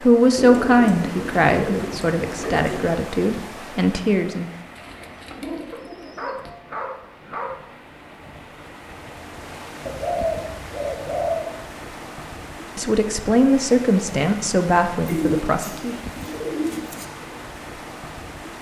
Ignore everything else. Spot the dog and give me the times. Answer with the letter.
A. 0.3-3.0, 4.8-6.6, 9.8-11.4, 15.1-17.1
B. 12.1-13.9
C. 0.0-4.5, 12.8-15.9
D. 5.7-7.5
D.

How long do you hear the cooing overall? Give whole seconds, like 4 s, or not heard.
8 s.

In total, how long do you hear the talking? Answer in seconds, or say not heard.
8 s.